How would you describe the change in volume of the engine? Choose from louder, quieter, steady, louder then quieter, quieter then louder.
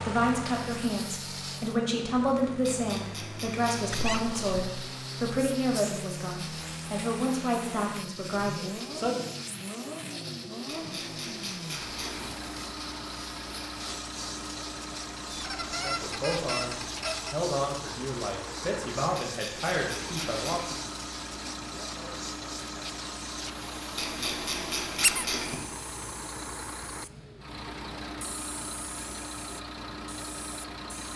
steady.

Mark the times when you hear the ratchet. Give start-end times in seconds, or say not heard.
2.6-4.2, 10.7-12.3, 19.1-20.8, 23.9-25.6.